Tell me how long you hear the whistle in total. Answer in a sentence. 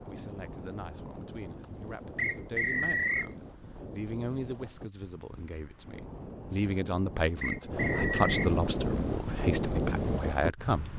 You can hear the whistle for 2 seconds altogether.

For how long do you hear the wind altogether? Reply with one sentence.
You can hear the wind for 11 seconds altogether.